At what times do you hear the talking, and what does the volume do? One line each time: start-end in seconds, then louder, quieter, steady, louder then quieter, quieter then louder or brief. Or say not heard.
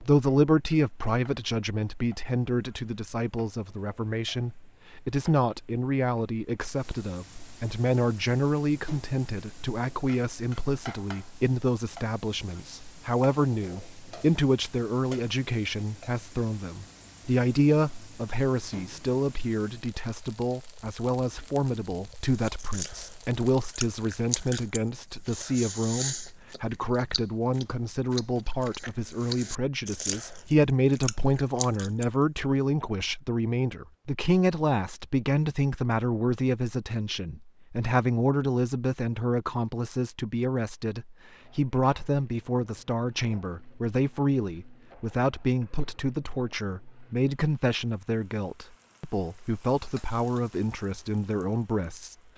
0.0-52.1 steady.